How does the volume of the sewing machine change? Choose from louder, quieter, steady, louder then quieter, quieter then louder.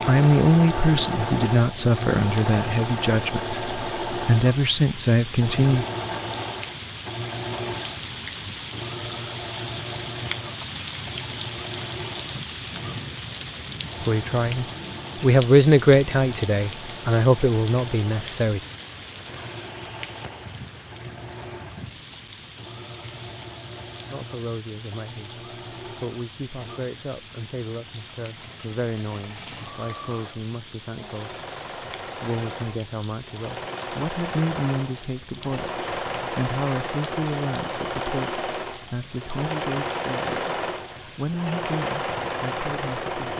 quieter then louder.